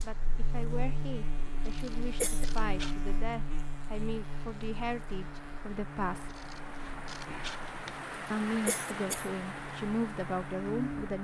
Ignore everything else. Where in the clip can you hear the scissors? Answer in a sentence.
You can hear the scissors from 1.6 to 3.0 s and from 6.2 to 8.0 s.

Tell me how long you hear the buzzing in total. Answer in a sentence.
You can hear the buzzing for 11 seconds altogether.